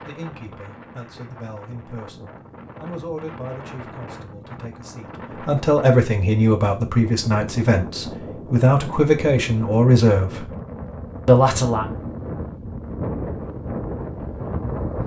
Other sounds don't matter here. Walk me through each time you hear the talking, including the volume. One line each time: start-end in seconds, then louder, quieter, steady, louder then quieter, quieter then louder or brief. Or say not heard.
0.0-10.5 louder
11.2-11.9 brief.